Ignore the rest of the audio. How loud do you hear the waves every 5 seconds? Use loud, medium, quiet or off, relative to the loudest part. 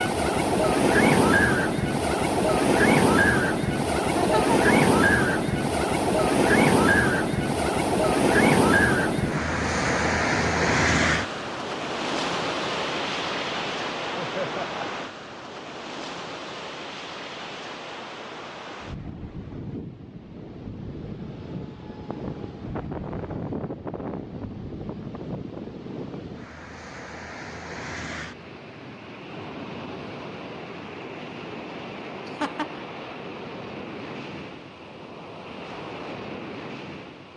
loud, loud, medium, quiet, quiet, quiet, quiet, quiet.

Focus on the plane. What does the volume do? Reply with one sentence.
The volume of the plane goes up, then down.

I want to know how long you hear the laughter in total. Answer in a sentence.
The laughter can be heard for 2 seconds in total.